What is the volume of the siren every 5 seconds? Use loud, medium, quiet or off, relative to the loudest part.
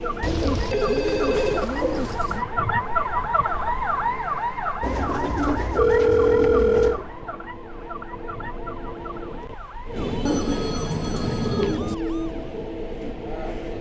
loud, medium, quiet.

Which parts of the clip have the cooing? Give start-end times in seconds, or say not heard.
0.2-2.5, 4.8-7.0, 9.9-11.9.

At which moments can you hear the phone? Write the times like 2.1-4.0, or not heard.
0.7-1.7, 5.8-7.0, 10.2-11.8.